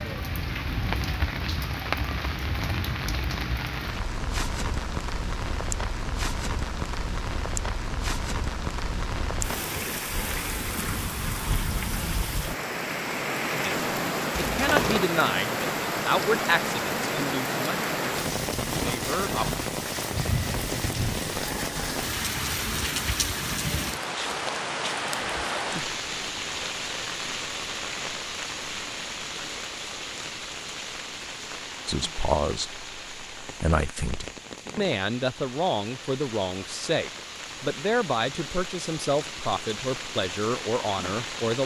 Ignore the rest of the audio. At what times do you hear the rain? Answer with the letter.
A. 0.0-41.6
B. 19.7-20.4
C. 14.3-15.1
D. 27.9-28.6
A.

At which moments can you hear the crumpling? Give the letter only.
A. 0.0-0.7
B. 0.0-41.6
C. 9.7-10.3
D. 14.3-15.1
D.